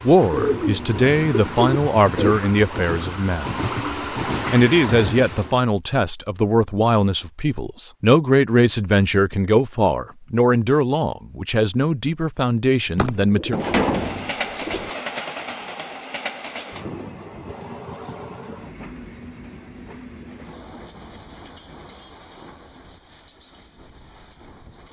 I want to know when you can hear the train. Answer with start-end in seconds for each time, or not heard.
0.0-5.6, 13.8-24.8.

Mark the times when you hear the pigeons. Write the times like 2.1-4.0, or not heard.
0.3-2.4, 12.9-14.9.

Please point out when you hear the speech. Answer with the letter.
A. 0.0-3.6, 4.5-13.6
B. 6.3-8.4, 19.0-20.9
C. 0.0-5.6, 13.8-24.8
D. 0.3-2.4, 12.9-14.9
A.